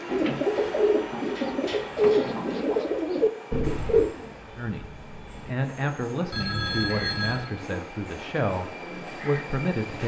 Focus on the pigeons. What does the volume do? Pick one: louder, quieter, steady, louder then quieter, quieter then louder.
quieter.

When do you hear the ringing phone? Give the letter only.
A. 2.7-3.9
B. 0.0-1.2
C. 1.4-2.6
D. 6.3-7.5
D.